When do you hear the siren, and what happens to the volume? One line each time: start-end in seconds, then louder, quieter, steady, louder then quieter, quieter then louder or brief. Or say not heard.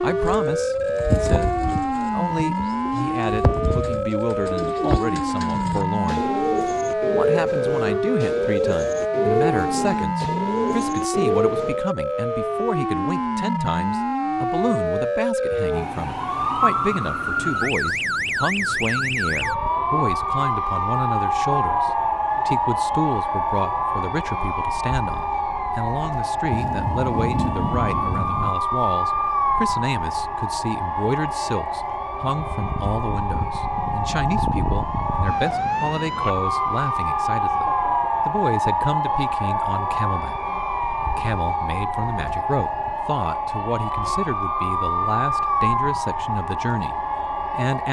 0.0-47.8 steady.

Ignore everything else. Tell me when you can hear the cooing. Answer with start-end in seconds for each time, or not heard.
0.1-11.8.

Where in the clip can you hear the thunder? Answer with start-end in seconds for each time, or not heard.
26.5-28.5.